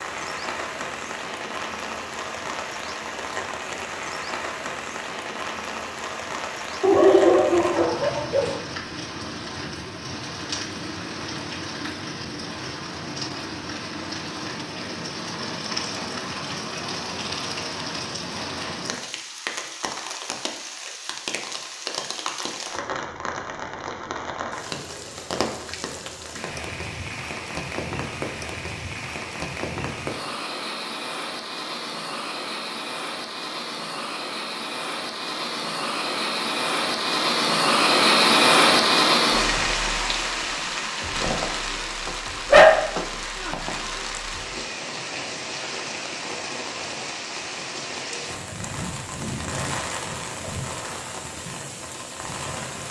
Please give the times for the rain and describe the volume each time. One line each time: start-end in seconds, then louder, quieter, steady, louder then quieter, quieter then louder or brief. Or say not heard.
0.0-52.8 louder then quieter.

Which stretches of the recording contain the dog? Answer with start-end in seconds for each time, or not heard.
6.8-8.6, 42.0-43.5.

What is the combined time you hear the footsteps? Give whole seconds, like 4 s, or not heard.
not heard.